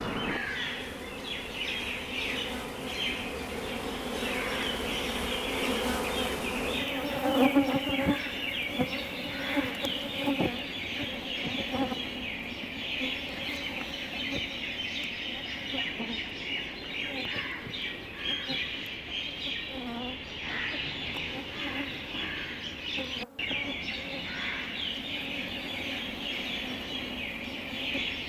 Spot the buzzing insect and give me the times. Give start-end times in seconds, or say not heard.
0.1-28.2.